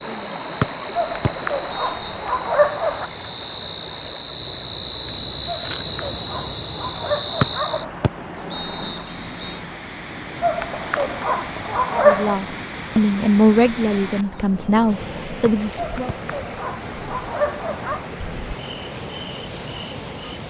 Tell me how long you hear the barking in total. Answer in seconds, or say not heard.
9 s.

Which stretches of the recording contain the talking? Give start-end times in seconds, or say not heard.
11.9-16.1.